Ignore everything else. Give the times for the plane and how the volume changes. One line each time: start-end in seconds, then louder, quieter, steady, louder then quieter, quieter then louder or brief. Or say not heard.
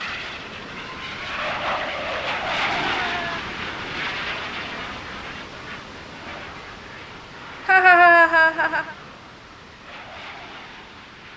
0.0-11.3 quieter.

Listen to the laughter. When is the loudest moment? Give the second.
8 s.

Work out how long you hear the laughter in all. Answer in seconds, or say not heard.
2 s.